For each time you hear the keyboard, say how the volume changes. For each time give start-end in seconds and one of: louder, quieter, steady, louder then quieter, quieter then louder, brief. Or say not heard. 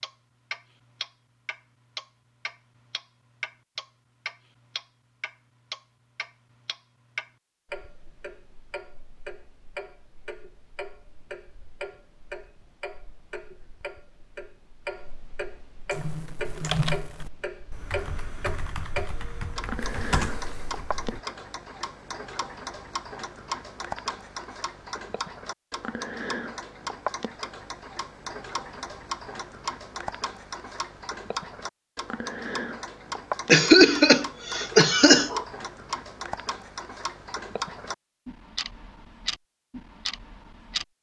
15.9-21.2 quieter then louder.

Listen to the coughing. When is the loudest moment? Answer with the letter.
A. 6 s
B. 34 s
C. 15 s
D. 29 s
B.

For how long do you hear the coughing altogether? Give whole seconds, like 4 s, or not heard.
2 s.